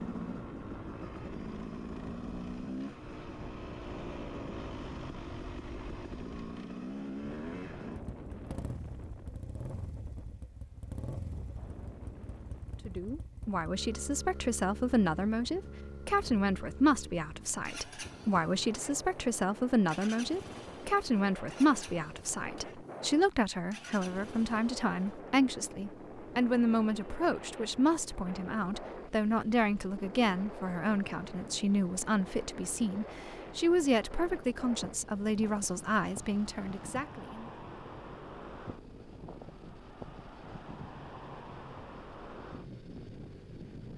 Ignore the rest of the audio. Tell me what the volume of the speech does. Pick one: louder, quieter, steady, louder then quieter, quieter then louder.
steady.